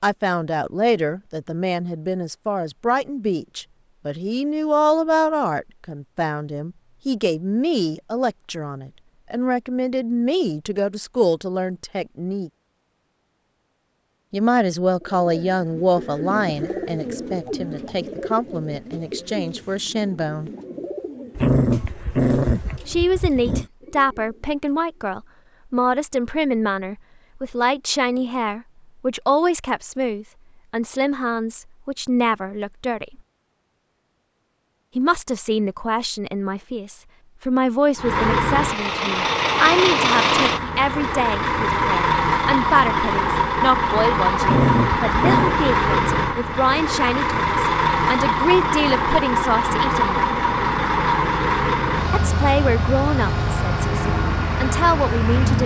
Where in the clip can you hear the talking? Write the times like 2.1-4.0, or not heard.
0.0-12.5, 14.3-20.5, 22.9-33.2, 35.0-50.3, 52.1-55.6.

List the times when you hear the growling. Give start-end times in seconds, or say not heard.
21.4-23.6, 44.4-45.6.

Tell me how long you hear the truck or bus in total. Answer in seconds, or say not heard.
18 s.